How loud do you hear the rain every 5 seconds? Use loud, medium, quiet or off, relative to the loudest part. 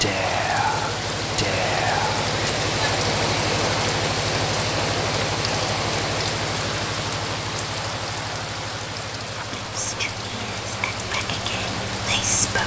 loud, loud, medium.